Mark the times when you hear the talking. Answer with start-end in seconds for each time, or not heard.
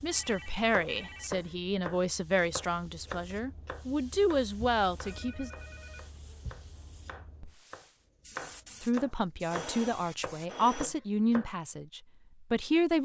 0.0-5.5, 8.8-13.0.